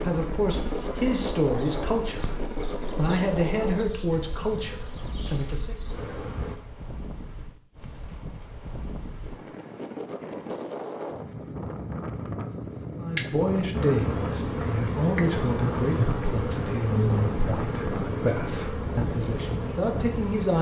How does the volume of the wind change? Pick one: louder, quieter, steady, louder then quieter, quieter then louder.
quieter then louder.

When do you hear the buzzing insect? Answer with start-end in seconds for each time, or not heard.
0.1-6.5, 13.7-20.5.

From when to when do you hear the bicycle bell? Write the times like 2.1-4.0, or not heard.
13.2-13.8.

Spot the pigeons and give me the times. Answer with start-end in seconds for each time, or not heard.
not heard.